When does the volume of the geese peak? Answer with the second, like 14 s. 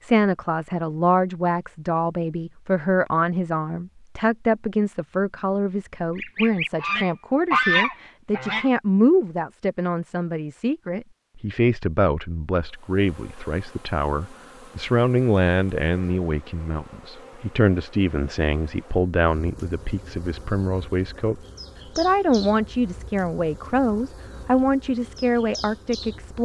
8 s.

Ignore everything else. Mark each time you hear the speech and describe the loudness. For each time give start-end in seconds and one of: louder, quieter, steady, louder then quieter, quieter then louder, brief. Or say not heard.
0.0-26.4 steady.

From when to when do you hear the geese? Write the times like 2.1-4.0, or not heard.
6.2-8.7.